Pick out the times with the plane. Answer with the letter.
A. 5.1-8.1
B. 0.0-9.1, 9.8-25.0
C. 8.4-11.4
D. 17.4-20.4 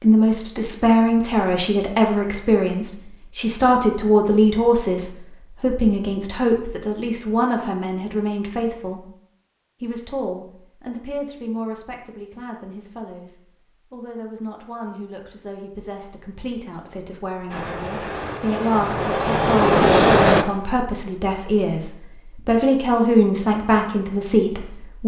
D.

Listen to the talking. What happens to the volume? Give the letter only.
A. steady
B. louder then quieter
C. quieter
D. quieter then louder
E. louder
D.